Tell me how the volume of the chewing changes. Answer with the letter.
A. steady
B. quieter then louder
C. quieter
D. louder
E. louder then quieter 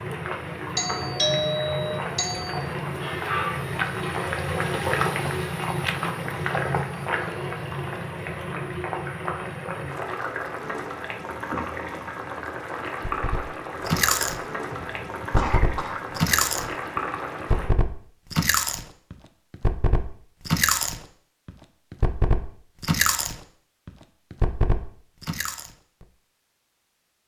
A.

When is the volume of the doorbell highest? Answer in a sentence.
The loudest moment of the doorbell is at 1 second.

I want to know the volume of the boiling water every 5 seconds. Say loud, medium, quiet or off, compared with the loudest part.
loud, loud, loud, loud, off, off.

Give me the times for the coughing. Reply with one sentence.
You can hear the coughing from 14.7 to 16.1 s.